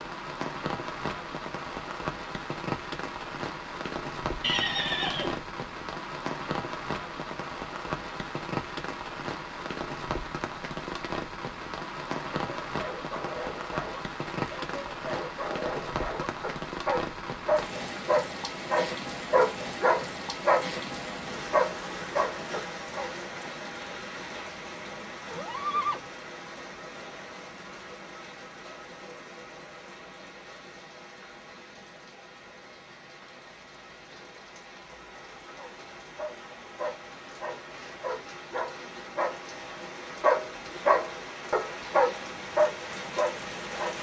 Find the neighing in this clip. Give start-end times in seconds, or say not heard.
4.4-5.4, 25.3-26.1.